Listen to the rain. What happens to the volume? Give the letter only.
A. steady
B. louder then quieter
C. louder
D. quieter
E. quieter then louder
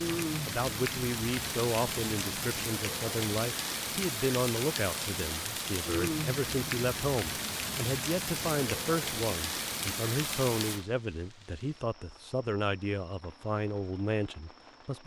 D.